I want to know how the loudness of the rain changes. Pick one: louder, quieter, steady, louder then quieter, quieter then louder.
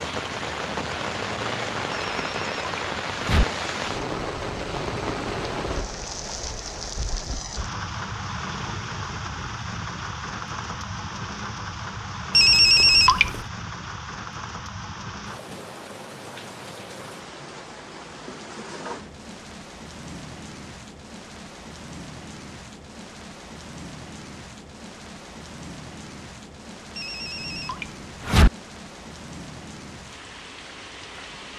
quieter.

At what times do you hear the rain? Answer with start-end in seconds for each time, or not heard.
0.0-31.5.